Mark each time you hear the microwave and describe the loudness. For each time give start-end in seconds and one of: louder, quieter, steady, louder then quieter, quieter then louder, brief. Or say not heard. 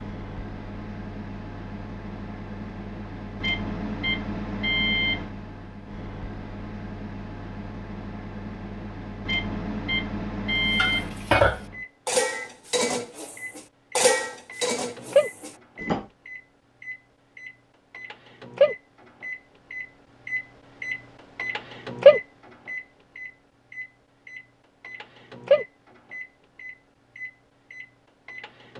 0.0-28.7 louder then quieter.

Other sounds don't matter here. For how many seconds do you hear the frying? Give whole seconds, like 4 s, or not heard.
not heard.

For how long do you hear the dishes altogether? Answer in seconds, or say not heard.
5 s.